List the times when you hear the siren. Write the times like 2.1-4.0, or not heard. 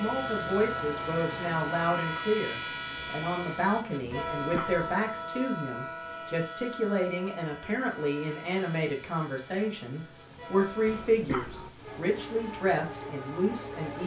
not heard.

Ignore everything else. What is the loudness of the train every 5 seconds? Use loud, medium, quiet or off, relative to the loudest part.
loud, medium, medium.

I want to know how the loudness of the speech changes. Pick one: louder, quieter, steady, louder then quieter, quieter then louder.
steady.